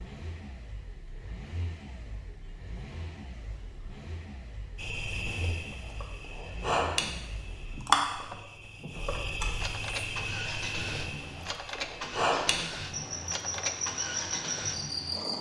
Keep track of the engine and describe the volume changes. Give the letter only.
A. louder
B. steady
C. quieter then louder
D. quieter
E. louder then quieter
A.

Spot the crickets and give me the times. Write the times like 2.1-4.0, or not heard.
4.8-15.3.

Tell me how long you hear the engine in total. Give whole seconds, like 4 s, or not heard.
15 s.